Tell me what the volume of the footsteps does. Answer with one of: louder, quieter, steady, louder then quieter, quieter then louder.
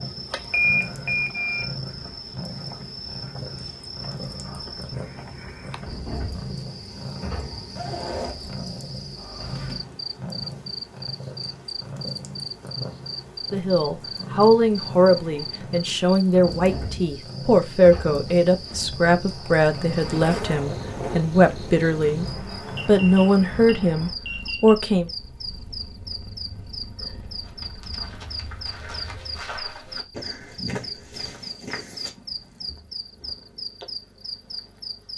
louder.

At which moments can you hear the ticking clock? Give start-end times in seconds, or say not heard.
not heard.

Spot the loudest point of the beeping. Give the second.
1 s.